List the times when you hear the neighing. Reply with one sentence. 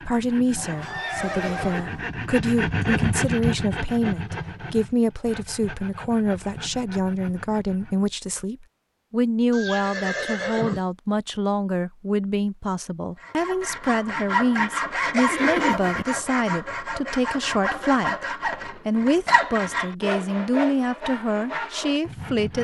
The neighing can be heard from 0.6 to 2.0 s, from 9.5 to 10.8 s and from 15.2 to 16.1 s.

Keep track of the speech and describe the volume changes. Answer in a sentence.
The volume of the speech stays about the same.